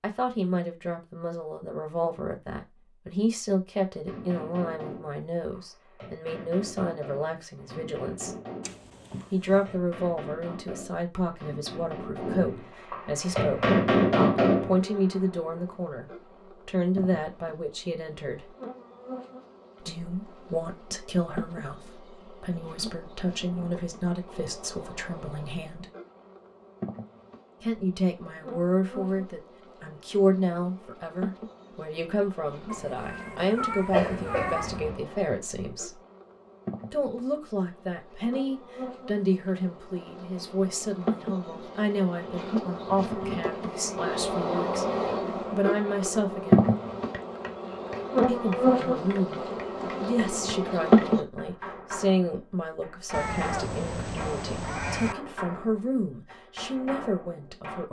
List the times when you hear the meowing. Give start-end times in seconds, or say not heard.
8.6-9.8, 32.6-34.8, 53.1-55.1.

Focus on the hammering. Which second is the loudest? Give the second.
14 s.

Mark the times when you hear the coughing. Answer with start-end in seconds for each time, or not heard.
33.9-35.0.